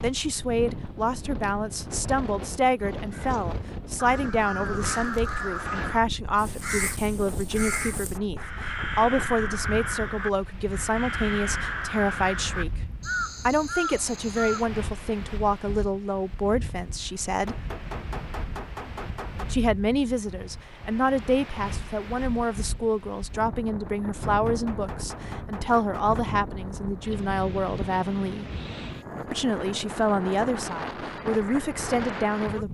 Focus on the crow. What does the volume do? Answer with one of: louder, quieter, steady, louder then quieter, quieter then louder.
steady.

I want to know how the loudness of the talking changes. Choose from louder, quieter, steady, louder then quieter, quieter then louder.
steady.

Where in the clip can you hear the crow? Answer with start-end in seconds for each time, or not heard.
2.8-14.7.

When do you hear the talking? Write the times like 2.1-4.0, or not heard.
0.0-12.7, 13.4-17.6, 19.5-28.4, 29.3-32.6.